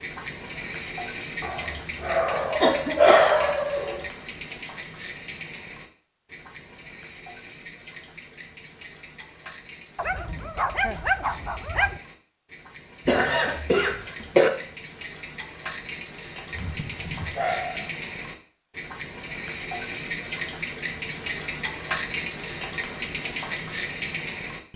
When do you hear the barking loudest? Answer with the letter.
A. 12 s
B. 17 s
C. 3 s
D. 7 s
C.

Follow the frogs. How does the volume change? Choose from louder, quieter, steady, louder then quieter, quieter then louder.
quieter then louder.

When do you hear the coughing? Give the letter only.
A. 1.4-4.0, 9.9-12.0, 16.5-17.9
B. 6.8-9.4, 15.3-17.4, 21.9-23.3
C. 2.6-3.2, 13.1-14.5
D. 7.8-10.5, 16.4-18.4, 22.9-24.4
C.